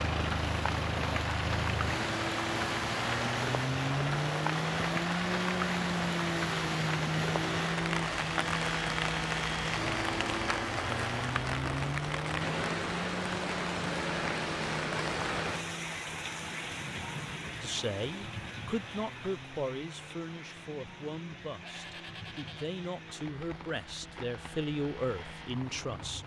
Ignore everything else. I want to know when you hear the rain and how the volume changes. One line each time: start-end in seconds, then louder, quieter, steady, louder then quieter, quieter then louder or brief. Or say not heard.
0.0-26.2 quieter.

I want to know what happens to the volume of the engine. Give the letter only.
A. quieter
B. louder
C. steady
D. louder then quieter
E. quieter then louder
A.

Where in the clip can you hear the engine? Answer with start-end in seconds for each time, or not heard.
0.0-26.2.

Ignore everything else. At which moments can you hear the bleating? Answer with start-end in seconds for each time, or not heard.
21.6-22.8.